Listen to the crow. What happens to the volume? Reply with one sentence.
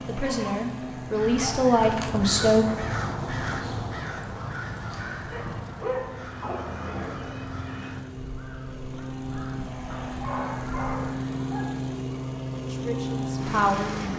The volume of the crow goes down.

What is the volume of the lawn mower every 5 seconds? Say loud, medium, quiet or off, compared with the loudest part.
medium, medium, loud.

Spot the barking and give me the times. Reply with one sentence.
You can hear the barking from 0.1 to 1.8 s, from 5.3 to 7.3 s and from 9.9 to 12.0 s.